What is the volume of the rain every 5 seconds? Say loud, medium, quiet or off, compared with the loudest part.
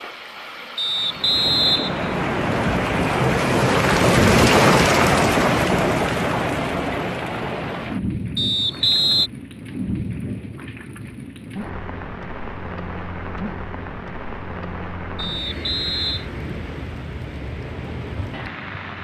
loud, loud, quiet, quiet.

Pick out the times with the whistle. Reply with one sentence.
You can hear the whistle from 0.8 to 2.8 s, from 8.3 to 9.3 s and from 15.2 to 16.2 s.